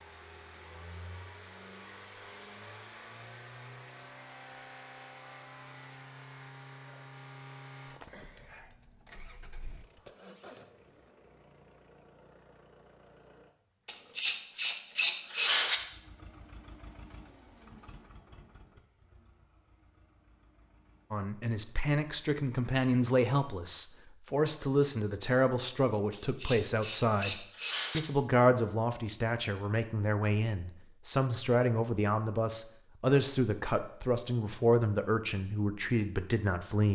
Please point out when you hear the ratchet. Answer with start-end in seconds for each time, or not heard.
13.8-15.8, 26.1-28.0.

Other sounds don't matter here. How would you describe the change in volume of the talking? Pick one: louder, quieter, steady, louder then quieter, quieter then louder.
steady.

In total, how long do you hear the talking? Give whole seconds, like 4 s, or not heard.
16 s.